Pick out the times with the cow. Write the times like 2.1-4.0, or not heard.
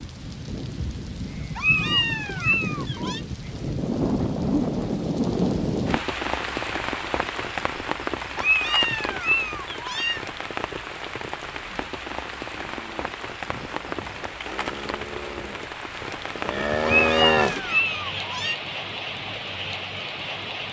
12.5-17.6.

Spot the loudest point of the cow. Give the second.
17 s.